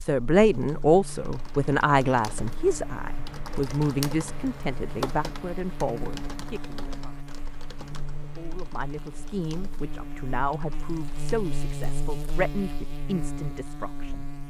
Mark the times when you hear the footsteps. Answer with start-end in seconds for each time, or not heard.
not heard.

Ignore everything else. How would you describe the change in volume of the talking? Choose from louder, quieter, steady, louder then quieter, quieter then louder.
quieter.